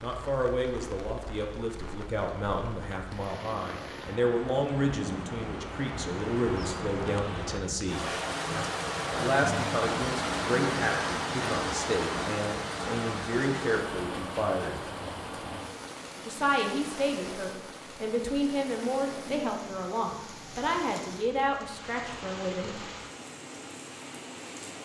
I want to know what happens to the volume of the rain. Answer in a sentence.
The loudness of the rain goes up, then down.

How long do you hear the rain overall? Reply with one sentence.
The rain can be heard for 25 seconds in total.